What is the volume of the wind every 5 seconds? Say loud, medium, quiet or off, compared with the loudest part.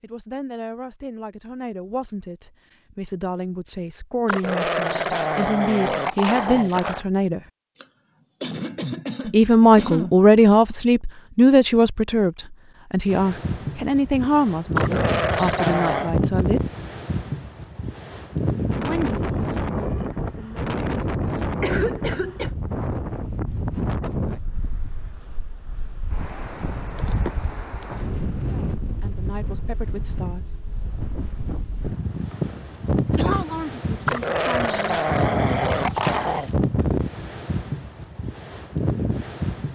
off, off, loud, loud, loud, medium, loud, loud.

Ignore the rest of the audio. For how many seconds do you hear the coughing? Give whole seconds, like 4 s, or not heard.
4 s.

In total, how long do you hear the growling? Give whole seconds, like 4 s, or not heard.
7 s.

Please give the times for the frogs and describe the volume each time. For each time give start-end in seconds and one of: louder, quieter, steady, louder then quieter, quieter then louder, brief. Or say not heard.
not heard.